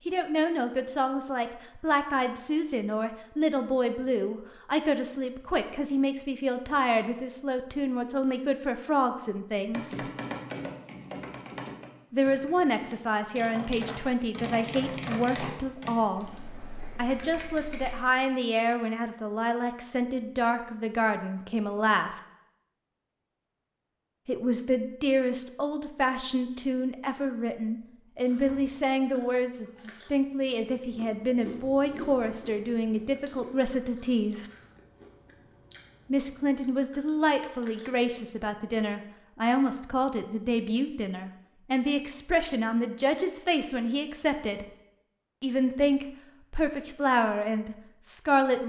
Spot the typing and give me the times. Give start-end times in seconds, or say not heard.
9.7-18.0.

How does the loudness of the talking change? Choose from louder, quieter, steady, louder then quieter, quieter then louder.
steady.